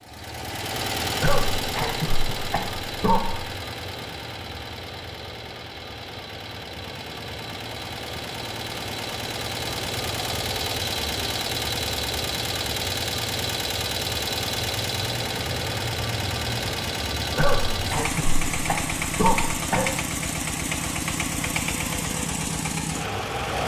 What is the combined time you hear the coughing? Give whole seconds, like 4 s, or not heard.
5 s.